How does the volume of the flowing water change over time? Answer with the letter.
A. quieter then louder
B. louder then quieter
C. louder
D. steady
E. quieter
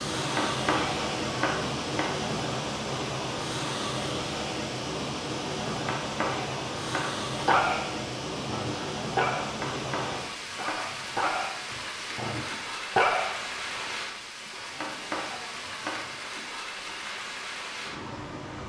E.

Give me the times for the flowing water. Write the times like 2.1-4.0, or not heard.
0.0-18.6.